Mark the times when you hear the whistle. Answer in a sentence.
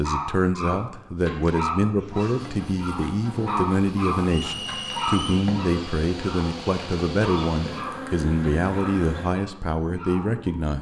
The whistle can be heard from 4.3 to 5.5 s.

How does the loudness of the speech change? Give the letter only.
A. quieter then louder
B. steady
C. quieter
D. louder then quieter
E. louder
B.